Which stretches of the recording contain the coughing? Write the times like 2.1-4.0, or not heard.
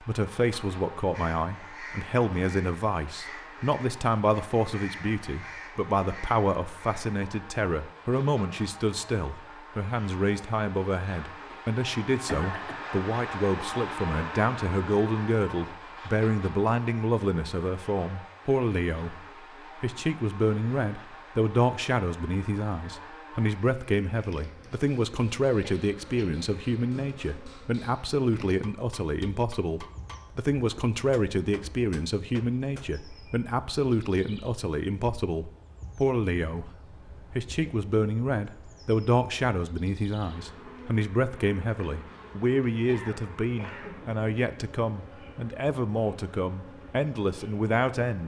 11.5-12.8, 25.6-26.3, 42.9-44.0.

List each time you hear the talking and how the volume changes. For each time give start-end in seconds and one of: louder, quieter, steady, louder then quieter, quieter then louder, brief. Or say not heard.
0.0-48.2 steady.